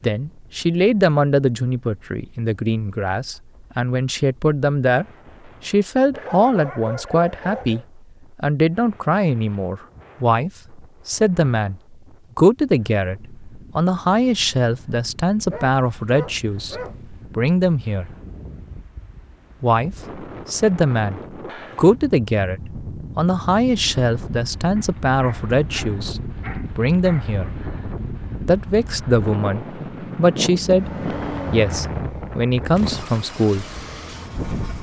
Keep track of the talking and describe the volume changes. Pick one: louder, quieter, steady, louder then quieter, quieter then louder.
steady.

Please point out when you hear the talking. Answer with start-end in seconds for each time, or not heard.
0.0-18.1, 19.6-27.5, 28.4-33.6.